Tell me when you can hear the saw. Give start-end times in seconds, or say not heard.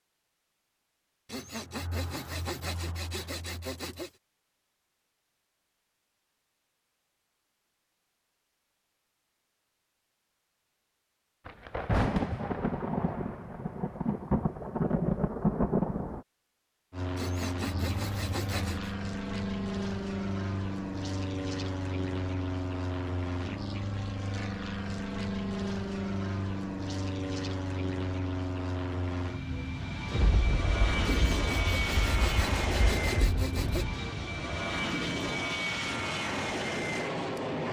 1.2-4.1, 17.1-18.9, 31.1-33.9.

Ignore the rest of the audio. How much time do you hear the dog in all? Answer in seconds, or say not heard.
not heard.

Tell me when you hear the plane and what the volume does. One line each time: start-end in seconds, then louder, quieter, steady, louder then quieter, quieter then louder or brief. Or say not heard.
16.9-37.6 steady.